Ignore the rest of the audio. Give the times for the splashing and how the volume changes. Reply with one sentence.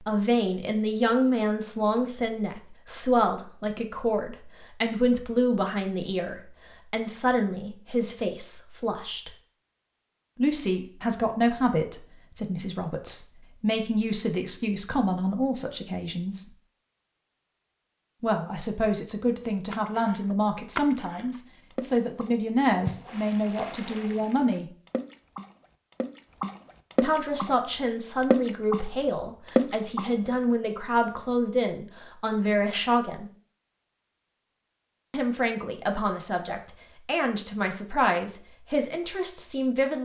The splashing can be heard from 19.7 to 27.6 s, getting quieter then louder; briefly from 28.2 to 28.9 s; and briefly from 29.4 to 30.1 s.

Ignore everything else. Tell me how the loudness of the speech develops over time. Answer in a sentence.
The loudness of the speech stays about the same.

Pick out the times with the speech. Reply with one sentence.
The speech can be heard from 0.0 to 9.3 s, from 10.3 to 16.4 s, from 18.2 to 24.6 s, from 27.0 to 33.3 s and from 35.1 to 40.0 s.